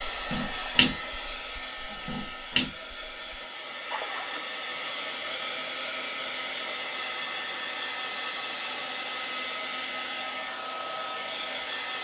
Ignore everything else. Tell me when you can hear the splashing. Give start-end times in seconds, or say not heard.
0.1-4.4.